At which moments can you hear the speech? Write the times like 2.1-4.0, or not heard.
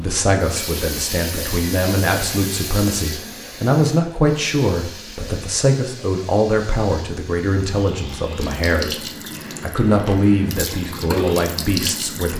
0.0-12.3.